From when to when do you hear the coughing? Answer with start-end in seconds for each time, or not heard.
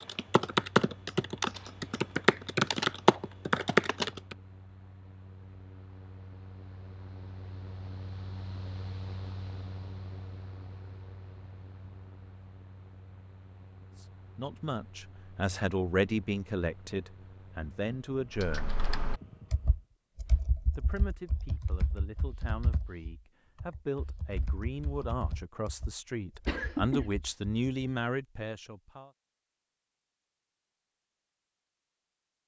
26.4-27.1.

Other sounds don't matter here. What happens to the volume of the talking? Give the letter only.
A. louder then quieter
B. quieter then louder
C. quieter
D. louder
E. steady
B.